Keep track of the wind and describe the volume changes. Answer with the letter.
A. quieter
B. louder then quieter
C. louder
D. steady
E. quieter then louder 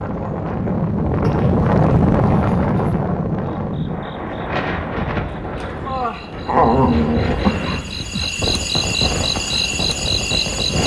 A.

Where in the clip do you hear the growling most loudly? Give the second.
7 s.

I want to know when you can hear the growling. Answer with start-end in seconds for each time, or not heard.
1.2-3.0, 6.5-8.3.